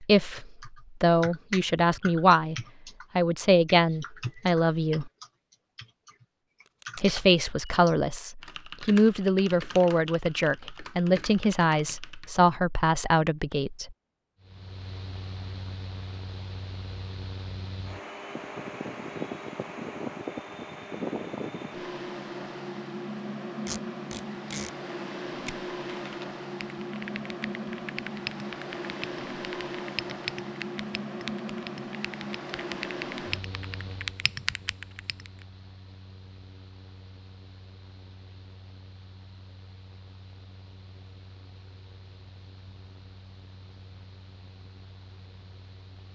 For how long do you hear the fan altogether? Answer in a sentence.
You can hear the fan for 32 seconds altogether.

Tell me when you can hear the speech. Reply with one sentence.
You can hear the speech from 0.0 to 2.5 s, from 3.1 to 5.1 s and from 7.0 to 13.9 s.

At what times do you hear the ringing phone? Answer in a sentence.
You can't hear the ringing phone here.